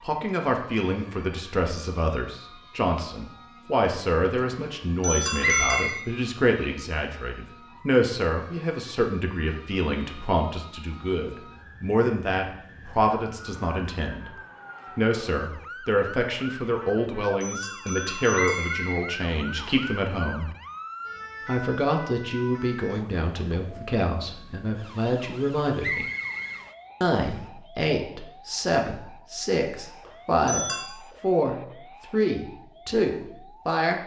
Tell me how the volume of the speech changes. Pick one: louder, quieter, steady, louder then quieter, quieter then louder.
steady.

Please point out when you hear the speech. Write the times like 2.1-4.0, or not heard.
0.0-14.3, 14.9-20.5, 21.4-26.1, 27.0-34.0.